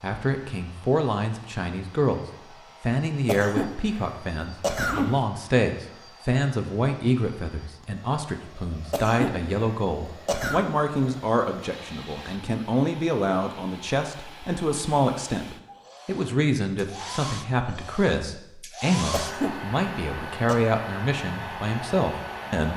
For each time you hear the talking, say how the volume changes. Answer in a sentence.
You can hear the talking from 0.0 to 22.7 s, at a steady volume.